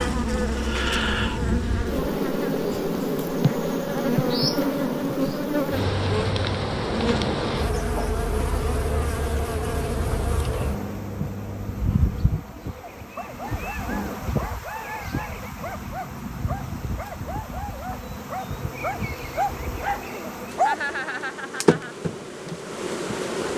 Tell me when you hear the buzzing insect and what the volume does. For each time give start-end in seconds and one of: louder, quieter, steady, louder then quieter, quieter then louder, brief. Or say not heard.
0.0-23.5 quieter.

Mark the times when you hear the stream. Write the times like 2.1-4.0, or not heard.
not heard.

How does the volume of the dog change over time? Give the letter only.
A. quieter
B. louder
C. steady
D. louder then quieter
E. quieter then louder
B.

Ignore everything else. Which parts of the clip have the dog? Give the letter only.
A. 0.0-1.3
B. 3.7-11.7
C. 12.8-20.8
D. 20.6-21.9
C.